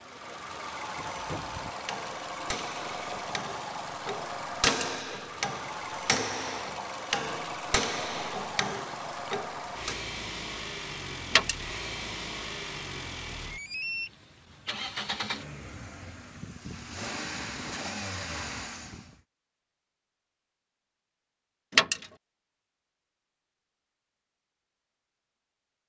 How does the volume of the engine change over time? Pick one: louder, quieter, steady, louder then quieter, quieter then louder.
steady.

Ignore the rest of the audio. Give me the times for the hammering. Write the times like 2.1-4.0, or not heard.
0.9-10.0.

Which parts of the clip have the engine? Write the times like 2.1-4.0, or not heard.
0.0-19.2.